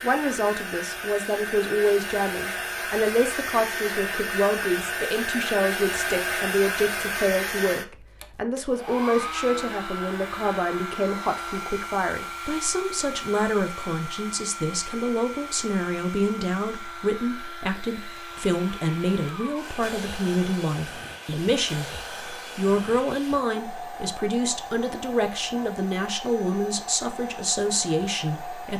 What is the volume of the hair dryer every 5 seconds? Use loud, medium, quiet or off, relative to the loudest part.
loud, loud, medium, medium, medium, medium.